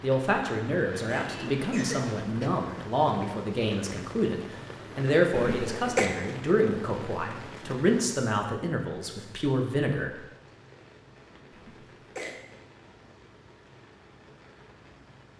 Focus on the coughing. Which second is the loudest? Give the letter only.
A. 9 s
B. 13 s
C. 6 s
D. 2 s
C.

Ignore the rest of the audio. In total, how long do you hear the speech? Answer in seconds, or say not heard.
10 s.